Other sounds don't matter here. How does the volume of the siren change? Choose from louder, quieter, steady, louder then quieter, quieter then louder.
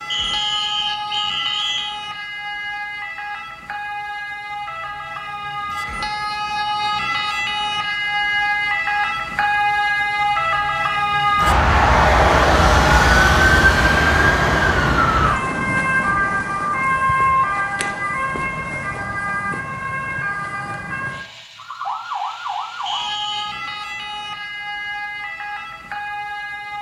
louder then quieter.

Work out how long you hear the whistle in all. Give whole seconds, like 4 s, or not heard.
3 s.